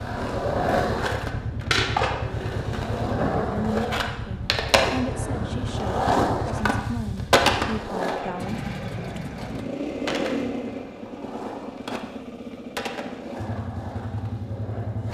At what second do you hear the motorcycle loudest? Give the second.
10 s.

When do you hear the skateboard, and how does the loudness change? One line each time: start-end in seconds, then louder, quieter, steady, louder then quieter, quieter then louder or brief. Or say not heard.
0.0-15.1 quieter.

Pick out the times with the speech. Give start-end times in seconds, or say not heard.
3.5-9.2.